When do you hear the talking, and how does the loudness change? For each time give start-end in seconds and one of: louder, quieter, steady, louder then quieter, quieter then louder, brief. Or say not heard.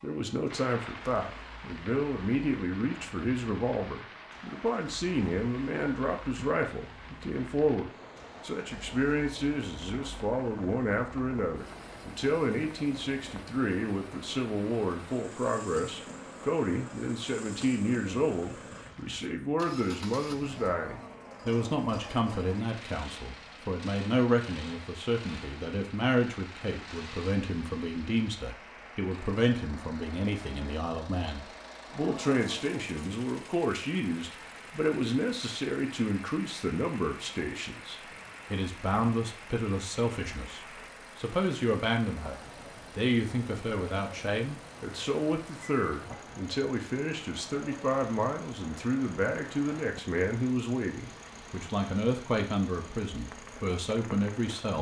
0.0-54.7 steady.